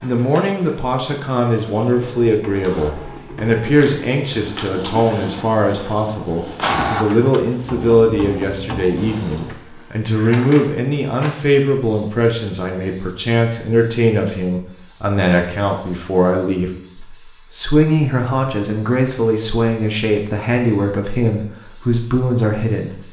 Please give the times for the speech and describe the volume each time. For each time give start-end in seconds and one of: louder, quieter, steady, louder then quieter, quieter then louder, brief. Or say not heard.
0.0-23.0 steady.